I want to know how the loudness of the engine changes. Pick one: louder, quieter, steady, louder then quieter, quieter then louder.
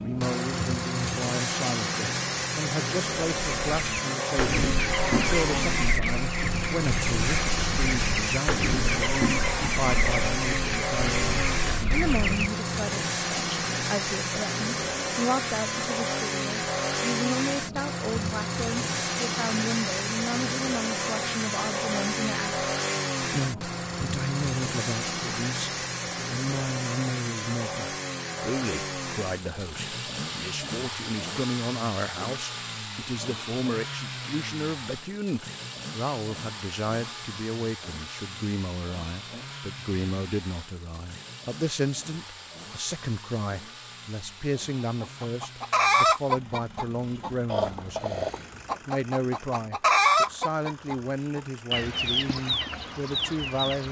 quieter.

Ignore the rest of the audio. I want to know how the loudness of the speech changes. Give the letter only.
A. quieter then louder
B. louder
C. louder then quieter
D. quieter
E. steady
E.